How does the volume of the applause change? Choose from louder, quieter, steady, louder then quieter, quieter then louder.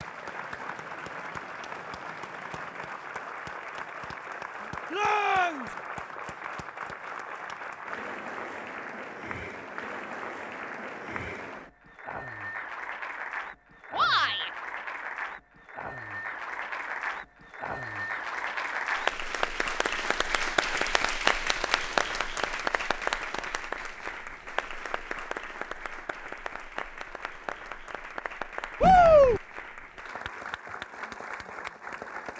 louder then quieter.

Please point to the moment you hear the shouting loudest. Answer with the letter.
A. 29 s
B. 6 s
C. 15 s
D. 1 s
A.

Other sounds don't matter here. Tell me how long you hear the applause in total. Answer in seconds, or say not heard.
32 s.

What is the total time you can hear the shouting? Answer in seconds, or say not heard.
2 s.